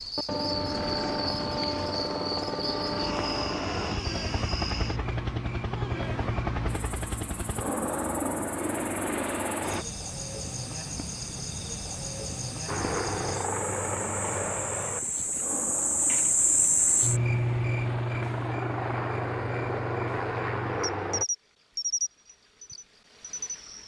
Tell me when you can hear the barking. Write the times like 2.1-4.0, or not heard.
not heard.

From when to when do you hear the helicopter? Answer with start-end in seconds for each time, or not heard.
0.0-9.8, 12.7-21.2.